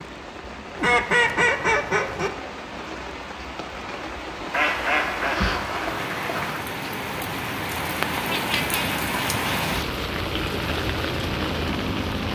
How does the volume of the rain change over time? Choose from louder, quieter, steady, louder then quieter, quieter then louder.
louder.